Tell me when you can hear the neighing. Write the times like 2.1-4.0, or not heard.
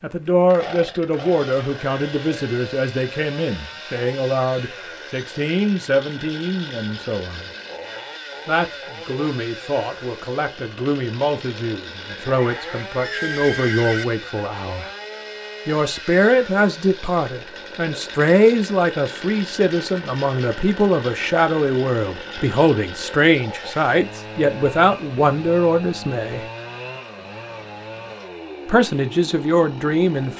12.1-14.1.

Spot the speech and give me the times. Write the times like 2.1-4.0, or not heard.
0.0-7.5, 8.4-14.9, 15.7-26.4, 28.6-30.3.